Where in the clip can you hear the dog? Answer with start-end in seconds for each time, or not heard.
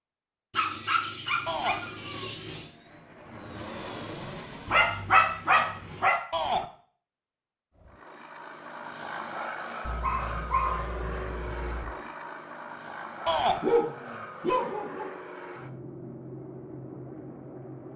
0.5-2.6, 4.7-6.2, 9.8-11.8, 13.6-15.1.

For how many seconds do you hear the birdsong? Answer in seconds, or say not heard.
not heard.